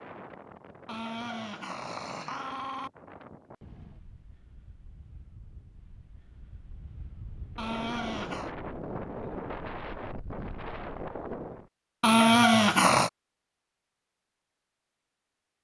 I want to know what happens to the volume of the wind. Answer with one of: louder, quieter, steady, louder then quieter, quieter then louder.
quieter then louder.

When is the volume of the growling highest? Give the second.
12 s.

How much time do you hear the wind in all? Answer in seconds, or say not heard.
12 s.